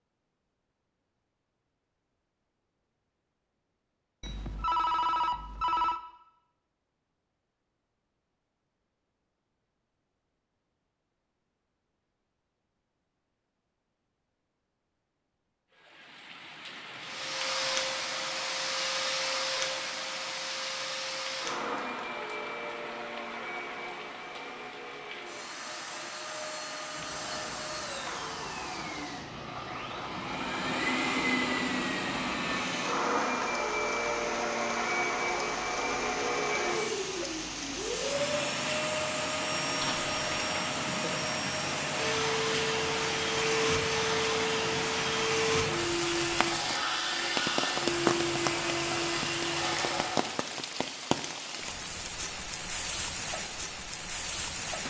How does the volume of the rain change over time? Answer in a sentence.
The volume of the rain goes up.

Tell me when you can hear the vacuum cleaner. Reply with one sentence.
You can hear the vacuum cleaner from 17.0 to 50.4 s.